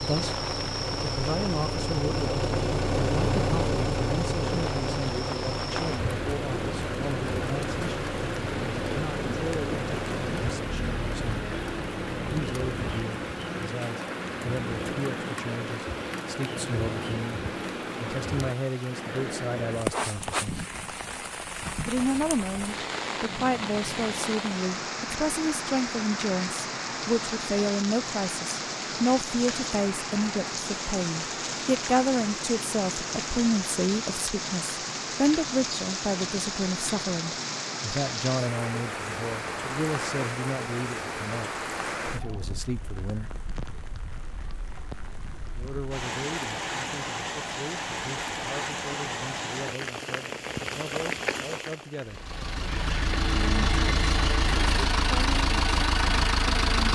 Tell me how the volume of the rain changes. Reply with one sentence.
The loudness of the rain stays about the same.